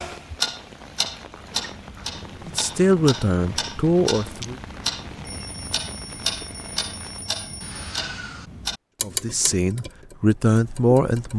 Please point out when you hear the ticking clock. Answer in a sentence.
The ticking clock can be heard from 0.0 to 11.3 s.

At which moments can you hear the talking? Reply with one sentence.
The talking can be heard from 2.5 to 4.6 s and from 9.0 to 11.3 s.